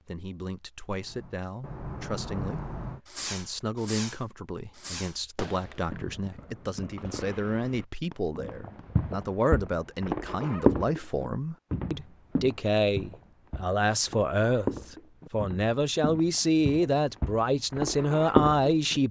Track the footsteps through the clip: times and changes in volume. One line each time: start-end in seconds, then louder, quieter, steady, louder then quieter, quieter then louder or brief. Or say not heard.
8.3-19.0 quieter then louder.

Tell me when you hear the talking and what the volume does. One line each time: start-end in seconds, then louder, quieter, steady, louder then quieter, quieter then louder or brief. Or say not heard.
0.1-19.0 louder.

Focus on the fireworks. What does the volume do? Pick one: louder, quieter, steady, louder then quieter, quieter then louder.
quieter.